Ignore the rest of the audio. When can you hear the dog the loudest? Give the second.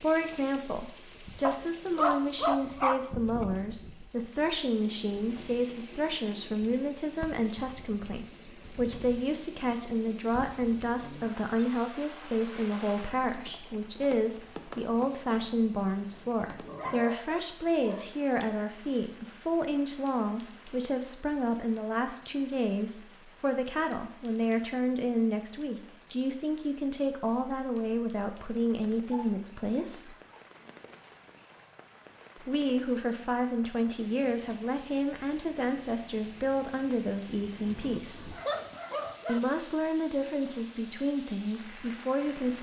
2 s.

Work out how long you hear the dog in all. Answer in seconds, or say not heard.
7 s.